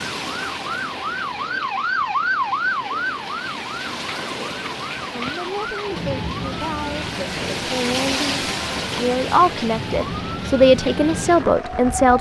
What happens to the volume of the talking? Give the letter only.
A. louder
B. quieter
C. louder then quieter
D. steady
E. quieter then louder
A.